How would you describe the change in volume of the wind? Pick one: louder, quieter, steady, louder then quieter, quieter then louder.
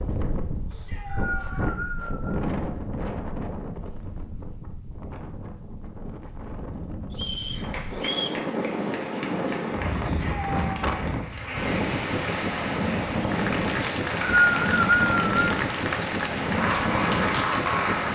quieter then louder.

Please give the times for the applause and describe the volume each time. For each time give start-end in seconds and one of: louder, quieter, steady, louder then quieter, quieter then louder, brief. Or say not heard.
7.5-18.1 louder.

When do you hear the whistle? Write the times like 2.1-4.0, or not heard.
0.7-2.4, 7.2-8.3, 13.8-15.3.